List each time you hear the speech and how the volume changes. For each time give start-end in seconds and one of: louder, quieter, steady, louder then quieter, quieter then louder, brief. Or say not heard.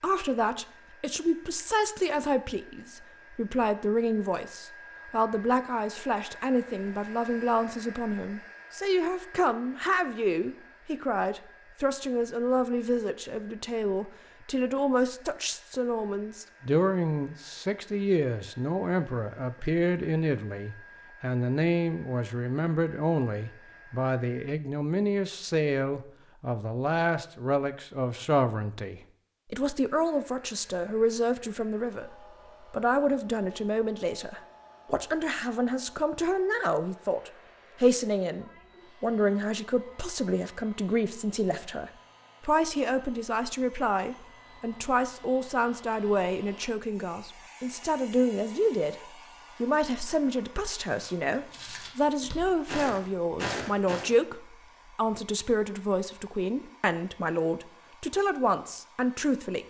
0.0-49.0 steady
49.6-59.6 steady.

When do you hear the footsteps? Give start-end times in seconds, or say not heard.
50.9-54.1.